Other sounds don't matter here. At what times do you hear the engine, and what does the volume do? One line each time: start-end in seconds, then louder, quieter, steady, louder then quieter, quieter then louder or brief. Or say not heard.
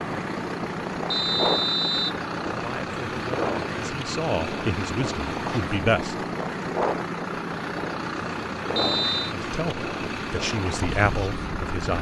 0.0-11.9 steady.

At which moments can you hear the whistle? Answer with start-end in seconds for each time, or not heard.
1.1-2.2, 8.8-9.3.